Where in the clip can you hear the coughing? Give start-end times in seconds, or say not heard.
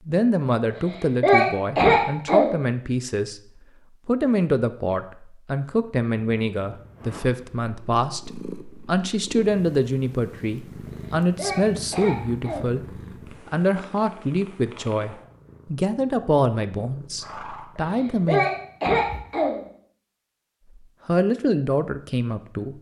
0.7-2.5, 10.8-12.8, 17.9-19.6.